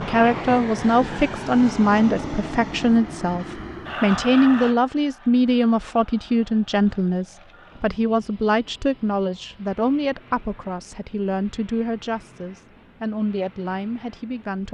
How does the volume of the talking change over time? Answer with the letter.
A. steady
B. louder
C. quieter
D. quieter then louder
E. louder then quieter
C.